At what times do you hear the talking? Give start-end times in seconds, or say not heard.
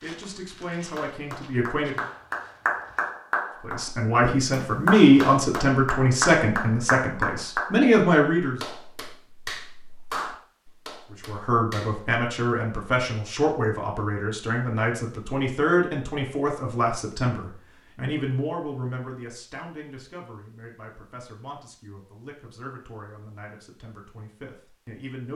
0.0-1.9, 3.6-8.6, 11.1-25.3.